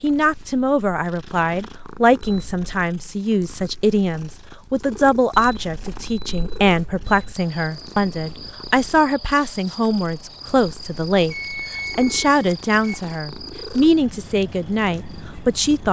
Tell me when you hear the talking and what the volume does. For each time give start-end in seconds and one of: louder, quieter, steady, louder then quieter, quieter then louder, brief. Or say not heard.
0.0-15.8 steady.